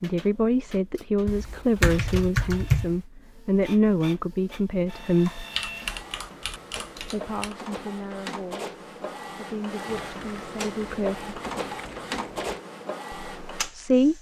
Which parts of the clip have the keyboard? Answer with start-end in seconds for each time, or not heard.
1.2-3.0, 5.2-7.5, 9.8-12.6.